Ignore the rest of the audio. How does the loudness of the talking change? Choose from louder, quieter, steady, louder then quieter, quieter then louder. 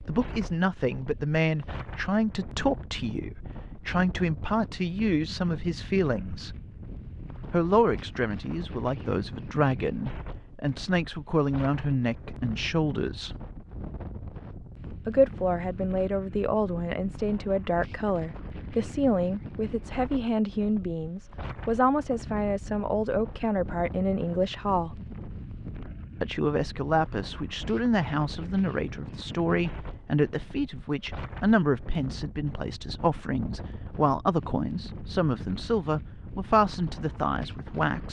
steady.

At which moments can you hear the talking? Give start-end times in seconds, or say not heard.
0.1-6.5, 7.5-13.3, 15.1-24.9, 26.2-38.0.